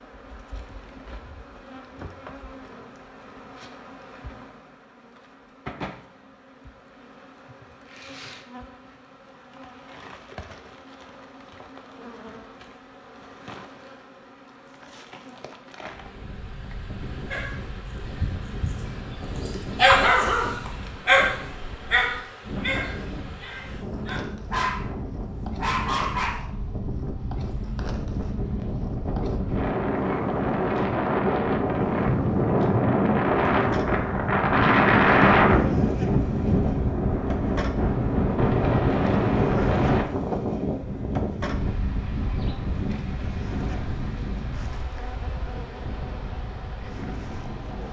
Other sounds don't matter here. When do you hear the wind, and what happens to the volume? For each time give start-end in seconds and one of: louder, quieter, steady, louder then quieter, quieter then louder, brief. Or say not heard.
15.9-47.8 louder then quieter.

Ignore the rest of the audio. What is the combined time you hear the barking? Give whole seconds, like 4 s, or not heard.
9 s.